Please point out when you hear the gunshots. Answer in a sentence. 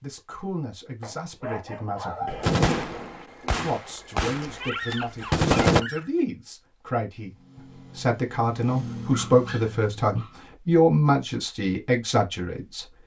You can hear the gunshots from 2.2 to 5.8 s.